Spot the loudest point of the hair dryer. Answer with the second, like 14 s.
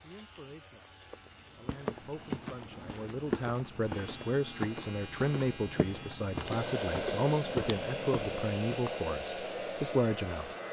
7 s.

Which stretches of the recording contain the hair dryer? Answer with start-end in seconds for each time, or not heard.
6.4-10.6.